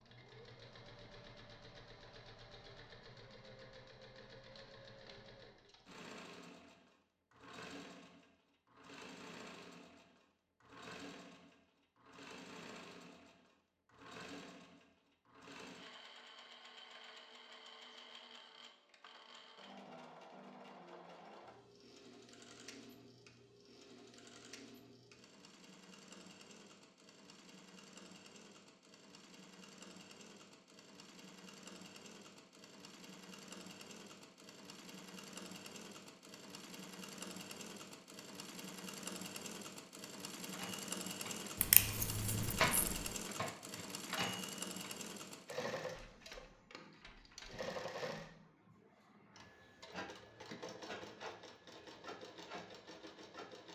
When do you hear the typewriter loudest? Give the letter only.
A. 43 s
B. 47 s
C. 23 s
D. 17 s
A.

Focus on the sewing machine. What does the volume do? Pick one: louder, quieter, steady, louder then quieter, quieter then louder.
louder.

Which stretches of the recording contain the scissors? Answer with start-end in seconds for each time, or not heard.
41.5-43.1.